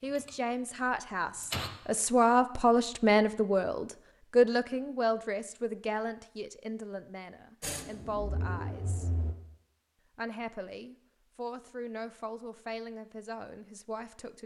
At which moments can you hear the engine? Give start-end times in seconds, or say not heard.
0.0-1.7, 7.6-9.3.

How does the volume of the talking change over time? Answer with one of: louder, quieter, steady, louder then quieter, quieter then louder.
quieter.